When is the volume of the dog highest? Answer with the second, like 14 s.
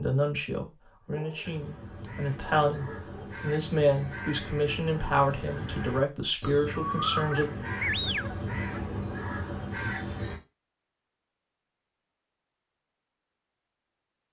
8 s.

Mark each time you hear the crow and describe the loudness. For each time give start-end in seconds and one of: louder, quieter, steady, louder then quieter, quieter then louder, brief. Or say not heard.
1.4-10.4 louder.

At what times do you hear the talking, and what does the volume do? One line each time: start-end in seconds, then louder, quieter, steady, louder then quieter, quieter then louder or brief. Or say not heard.
0.0-7.5 louder.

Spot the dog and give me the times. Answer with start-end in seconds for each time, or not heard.
1.1-3.4, 7.3-9.0.